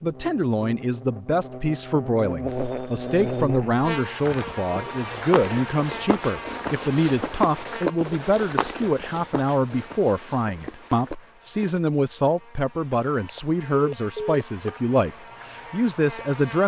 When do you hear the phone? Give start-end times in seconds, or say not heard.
2.5-3.5, 13.2-14.8.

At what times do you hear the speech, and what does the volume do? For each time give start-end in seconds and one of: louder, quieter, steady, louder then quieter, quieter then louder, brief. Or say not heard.
0.0-16.6 steady.